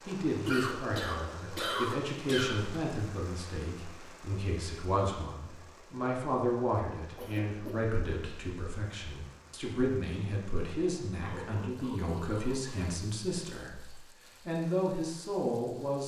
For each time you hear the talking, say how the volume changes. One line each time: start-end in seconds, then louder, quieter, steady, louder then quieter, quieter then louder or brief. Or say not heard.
0.1-16.0 steady.